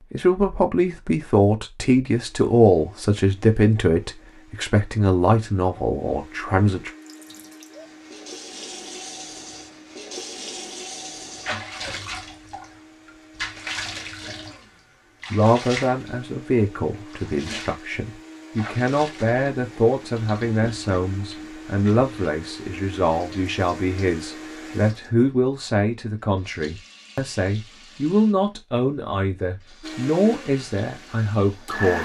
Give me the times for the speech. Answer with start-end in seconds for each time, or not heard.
0.1-6.9, 15.3-32.0.